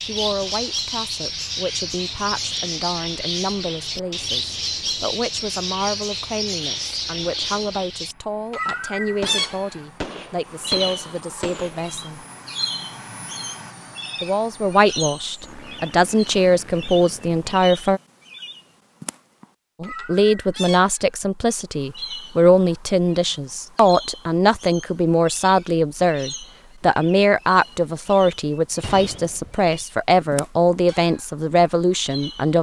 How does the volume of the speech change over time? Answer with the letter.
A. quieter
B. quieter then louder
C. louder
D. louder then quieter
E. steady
C.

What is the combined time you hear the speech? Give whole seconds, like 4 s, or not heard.
29 s.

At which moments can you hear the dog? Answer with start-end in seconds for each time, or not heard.
not heard.